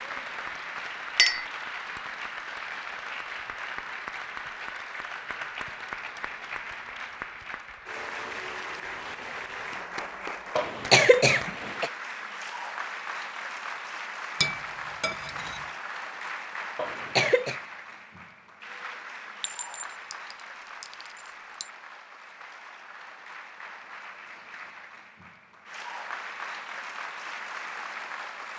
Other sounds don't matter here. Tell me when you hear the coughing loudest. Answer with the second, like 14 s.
11 s.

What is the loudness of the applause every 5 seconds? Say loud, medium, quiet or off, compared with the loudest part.
loud, loud, loud, loud, medium, loud.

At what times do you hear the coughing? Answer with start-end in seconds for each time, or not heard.
10.6-11.9, 16.8-17.6.